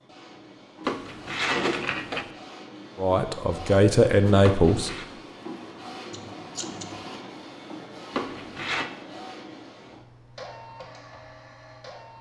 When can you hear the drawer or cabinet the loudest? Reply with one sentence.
The volume of the drawer or cabinet peaks at 2 seconds.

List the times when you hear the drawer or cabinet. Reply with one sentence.
You can hear the drawer or cabinet from 0.8 to 2.3 s, from 4.4 to 5.0 s and from 8.1 to 8.9 s.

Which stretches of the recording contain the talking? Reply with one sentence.
You can hear the talking from 3.0 to 4.9 s.